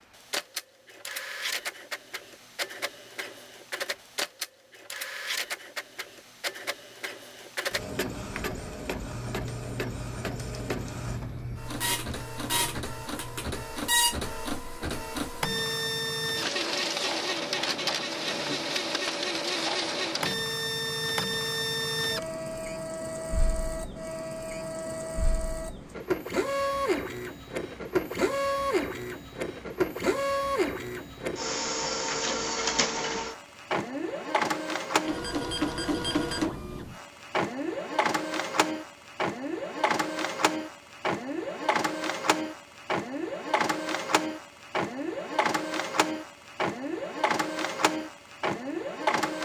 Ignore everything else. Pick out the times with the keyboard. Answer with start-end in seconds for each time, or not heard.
8.2-13.7.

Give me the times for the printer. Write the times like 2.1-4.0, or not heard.
0.0-49.4.